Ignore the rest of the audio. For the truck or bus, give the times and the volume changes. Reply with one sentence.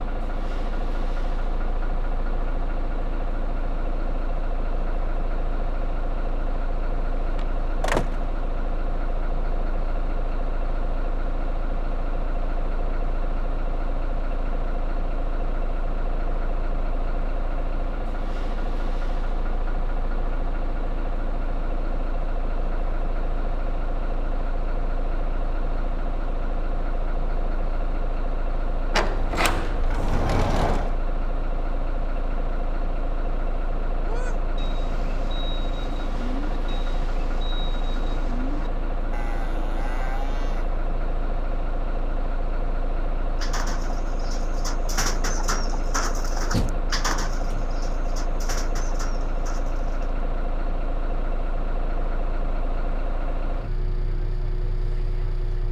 The truck or bus can be heard from 0.0 to 55.6 s, at a steady volume.